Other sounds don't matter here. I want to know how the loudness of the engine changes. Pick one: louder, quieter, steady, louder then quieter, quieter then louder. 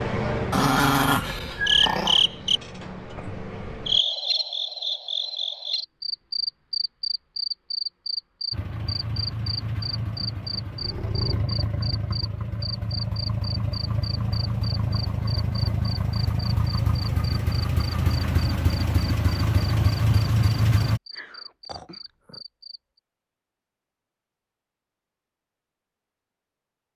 louder.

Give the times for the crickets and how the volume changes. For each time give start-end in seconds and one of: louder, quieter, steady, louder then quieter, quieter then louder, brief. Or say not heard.
0.0-23.0 quieter.